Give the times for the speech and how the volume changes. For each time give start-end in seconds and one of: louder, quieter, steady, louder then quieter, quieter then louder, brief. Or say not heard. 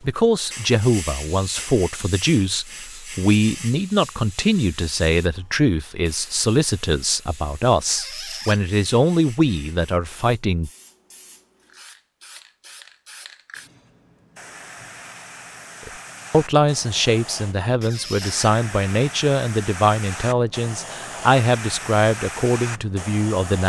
0.0-10.7 steady
15.8-23.6 steady.